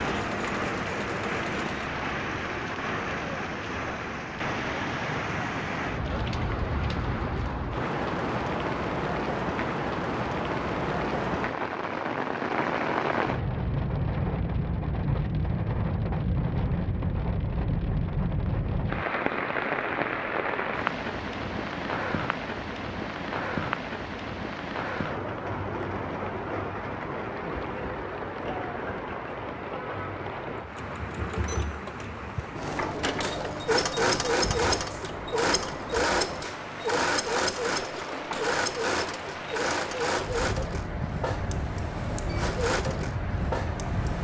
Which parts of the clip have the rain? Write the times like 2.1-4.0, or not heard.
0.0-44.1.